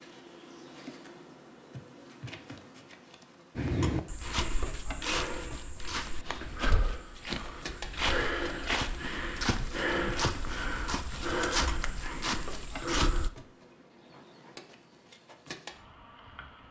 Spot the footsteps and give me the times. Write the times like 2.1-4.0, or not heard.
3.5-13.3.